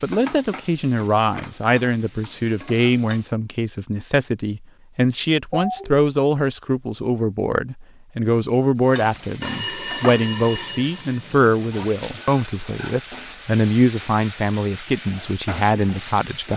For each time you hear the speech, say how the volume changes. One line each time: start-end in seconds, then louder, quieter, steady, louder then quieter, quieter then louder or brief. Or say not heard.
0.0-16.5 steady.